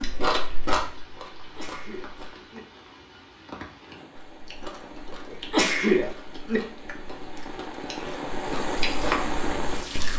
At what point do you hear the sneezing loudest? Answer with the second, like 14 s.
6 s.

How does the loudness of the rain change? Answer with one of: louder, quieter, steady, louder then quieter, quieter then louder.
louder.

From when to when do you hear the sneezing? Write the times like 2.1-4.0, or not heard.
1.4-2.6, 5.3-6.6.